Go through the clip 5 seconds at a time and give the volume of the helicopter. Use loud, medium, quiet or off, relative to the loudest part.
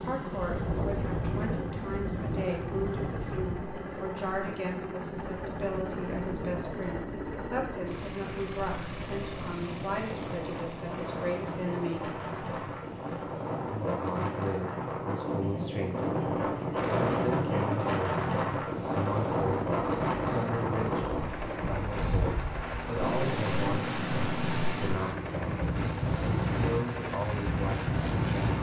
loud, loud, medium, medium, loud, loud.